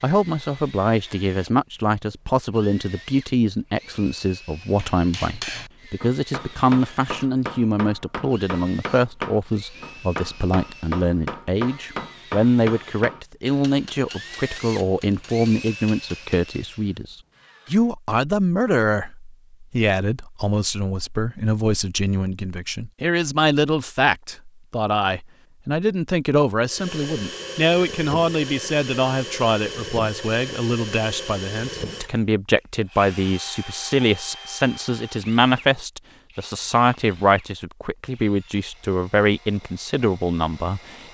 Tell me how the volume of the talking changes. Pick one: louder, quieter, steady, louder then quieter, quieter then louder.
steady.